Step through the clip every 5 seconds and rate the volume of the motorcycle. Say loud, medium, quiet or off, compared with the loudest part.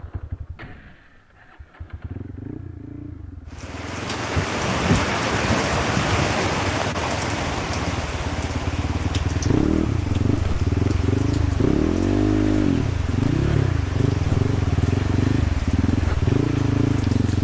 quiet, medium, loud, loud.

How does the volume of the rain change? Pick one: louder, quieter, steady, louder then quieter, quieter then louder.
quieter.